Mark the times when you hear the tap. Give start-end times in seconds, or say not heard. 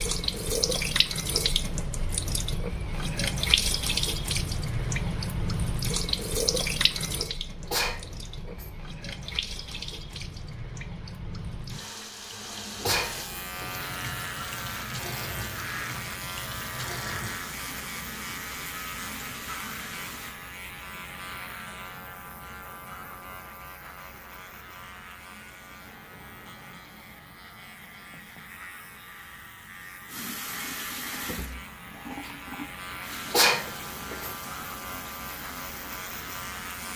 0.0-20.4, 30.1-36.9.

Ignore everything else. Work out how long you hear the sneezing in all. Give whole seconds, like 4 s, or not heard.
3 s.